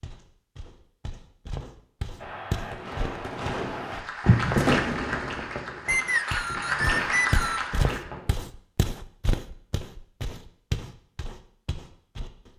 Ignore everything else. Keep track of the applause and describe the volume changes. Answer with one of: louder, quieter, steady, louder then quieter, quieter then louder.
quieter then louder.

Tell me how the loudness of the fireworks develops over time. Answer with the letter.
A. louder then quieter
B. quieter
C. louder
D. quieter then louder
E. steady
A.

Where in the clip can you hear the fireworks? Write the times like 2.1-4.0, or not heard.
2.2-8.4.